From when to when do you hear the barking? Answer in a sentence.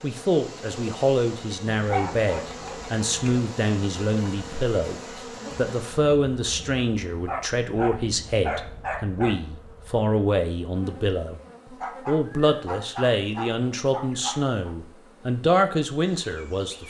You can hear the barking from 1.7 to 3.4 s, from 7.2 to 9.3 s and from 11.8 to 14.8 s.